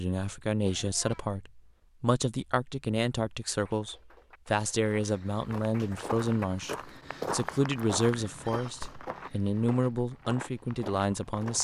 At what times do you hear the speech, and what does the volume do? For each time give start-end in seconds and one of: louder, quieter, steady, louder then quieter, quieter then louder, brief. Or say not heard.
0.0-11.5 steady.